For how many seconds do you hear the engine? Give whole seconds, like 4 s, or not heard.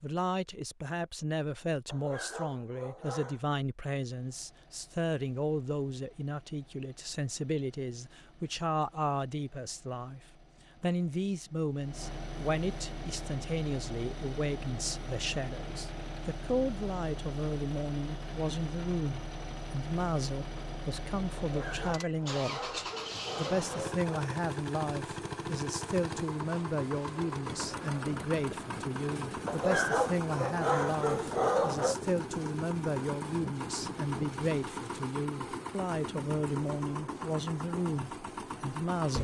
35 s.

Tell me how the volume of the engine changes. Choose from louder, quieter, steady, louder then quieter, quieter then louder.
louder.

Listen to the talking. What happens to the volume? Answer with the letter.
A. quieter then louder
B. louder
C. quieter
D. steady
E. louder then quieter
D.